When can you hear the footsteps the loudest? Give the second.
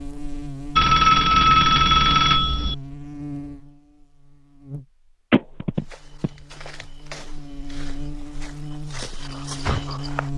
10 s.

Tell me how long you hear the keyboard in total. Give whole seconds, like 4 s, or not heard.
not heard.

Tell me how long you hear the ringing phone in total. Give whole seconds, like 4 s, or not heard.
3 s.